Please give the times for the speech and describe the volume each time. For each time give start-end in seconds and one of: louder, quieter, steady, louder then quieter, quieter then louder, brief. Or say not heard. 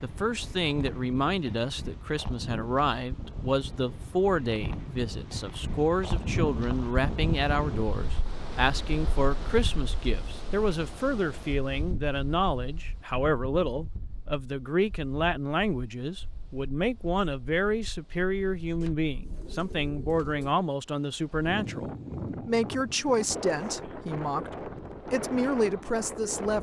0.0-26.5 steady.